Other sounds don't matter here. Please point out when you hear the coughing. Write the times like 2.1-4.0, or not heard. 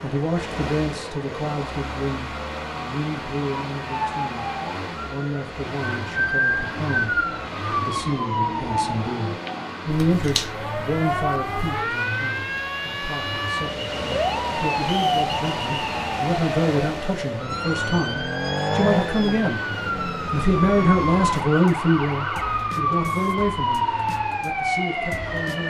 not heard.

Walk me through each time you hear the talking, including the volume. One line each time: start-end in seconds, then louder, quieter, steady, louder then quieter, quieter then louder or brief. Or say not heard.
0.0-4.5 steady
5.0-7.2 brief
7.8-19.6 quieter then louder
20.3-25.6 quieter.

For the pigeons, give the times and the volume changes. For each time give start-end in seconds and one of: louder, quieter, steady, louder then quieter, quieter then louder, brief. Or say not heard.
not heard.